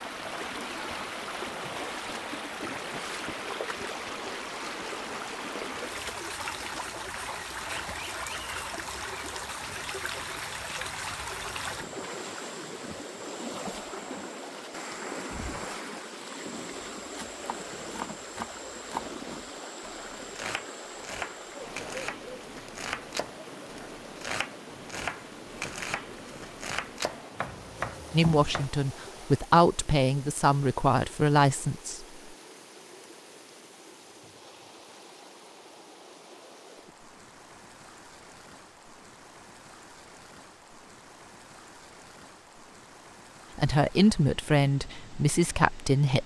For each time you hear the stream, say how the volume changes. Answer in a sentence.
You can hear the stream from 0.0 to 46.2 s, getting quieter.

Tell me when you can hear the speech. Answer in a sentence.
The speech can be heard from 28.1 to 32.0 s and from 43.5 to 46.2 s.